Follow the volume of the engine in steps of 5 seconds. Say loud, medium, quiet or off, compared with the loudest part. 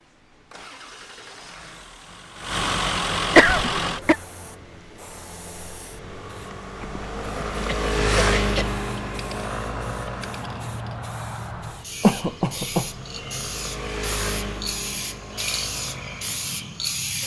loud, loud, medium, quiet.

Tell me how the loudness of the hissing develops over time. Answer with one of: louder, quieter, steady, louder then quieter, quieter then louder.
louder.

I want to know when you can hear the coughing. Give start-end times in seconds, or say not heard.
3.4-4.2, 7.5-8.8, 12.0-12.9.